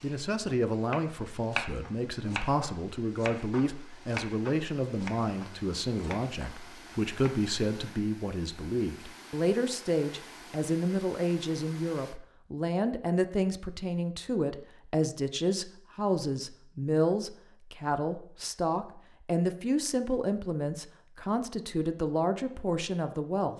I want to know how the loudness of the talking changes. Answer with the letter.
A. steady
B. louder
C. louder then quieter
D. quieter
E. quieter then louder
A.